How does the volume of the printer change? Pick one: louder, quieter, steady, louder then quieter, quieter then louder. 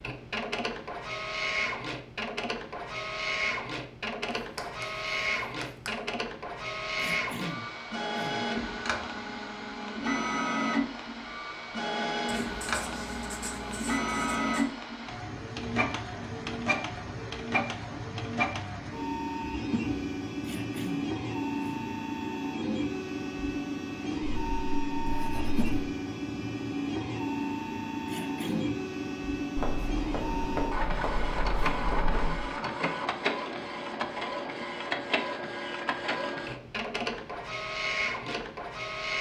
steady.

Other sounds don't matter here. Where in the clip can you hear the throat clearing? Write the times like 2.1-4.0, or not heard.
7.0-8.5, 20.4-21.9, 28.1-28.8.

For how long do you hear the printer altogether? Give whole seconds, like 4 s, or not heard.
39 s.